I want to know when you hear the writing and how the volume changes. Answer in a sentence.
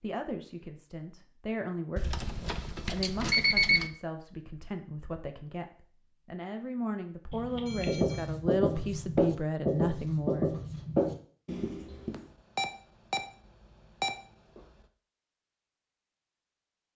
The writing can be heard from 7.8 to 12.2 s, getting quieter.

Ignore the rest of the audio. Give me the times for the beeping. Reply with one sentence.
You can hear the beeping from 1.9 to 3.9 s, from 7.3 to 8.2 s, from 12.1 to 13.2 s and from 14.0 to 14.7 s.